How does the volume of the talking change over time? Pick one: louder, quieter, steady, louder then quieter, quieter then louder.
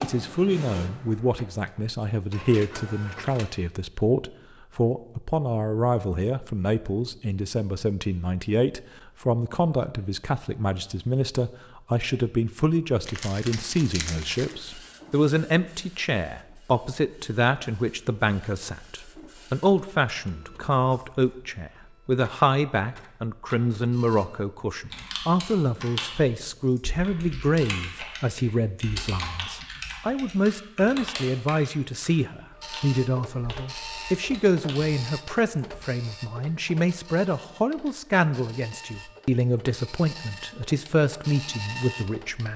steady.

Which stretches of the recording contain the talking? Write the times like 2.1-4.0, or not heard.
0.0-42.5.